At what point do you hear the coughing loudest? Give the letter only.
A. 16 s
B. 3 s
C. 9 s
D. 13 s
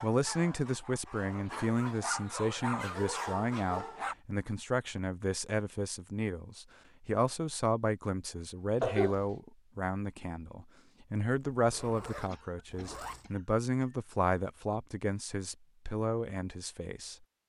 C.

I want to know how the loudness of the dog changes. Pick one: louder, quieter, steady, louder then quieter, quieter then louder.
louder.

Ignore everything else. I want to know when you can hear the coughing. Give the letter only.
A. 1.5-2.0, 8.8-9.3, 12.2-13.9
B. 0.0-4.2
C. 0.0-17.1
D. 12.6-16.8
A.